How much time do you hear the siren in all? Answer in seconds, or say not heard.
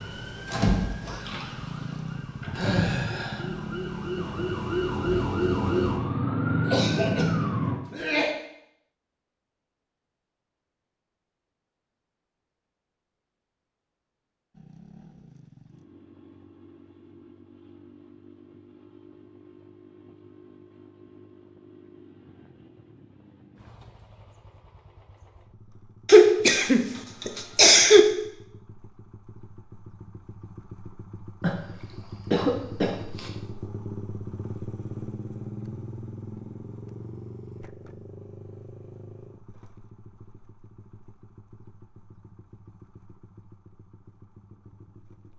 8 s.